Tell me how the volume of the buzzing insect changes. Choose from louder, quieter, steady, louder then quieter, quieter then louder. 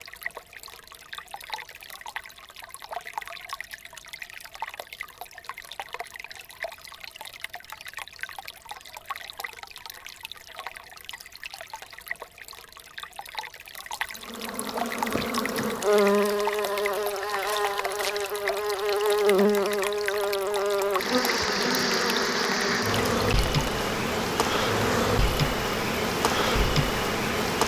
steady.